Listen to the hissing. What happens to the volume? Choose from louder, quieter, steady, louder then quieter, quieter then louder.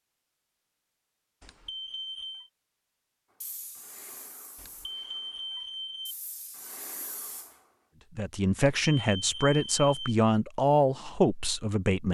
quieter then louder.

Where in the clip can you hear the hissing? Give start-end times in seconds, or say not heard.
3.4-7.7.